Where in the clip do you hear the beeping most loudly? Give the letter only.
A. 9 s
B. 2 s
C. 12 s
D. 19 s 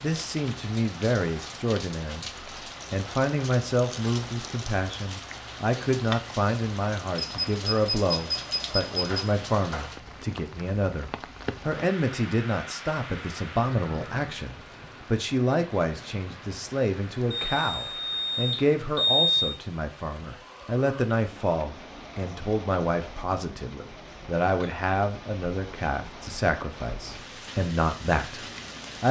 D.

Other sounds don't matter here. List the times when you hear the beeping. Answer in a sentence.
The beeping can be heard from 7.2 to 9.2 s and from 17.3 to 19.6 s.